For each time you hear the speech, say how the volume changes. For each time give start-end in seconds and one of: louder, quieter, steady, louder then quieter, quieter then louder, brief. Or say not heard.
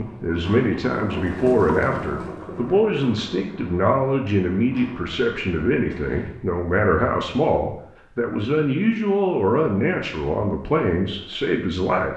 0.0-12.1 steady.